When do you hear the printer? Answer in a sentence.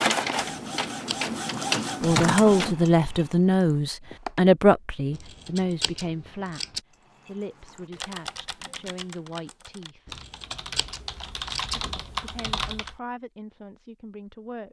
You can hear the printer from 0.0 to 2.8 s.